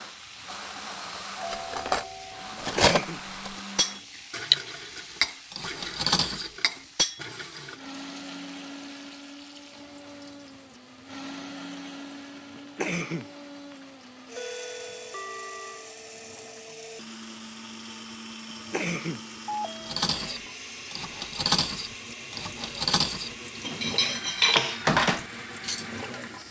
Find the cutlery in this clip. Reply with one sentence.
The cutlery can be heard from 1.5 to 4.5 s, from 5.2 to 7.2 s and from 19.9 to 25.9 s.